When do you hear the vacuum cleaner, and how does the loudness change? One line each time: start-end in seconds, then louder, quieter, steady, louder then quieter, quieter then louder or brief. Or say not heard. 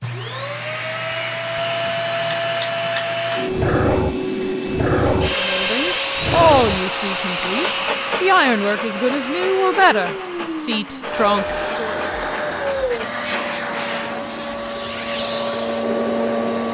0.0-16.6 steady.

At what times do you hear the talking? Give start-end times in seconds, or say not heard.
5.3-11.9.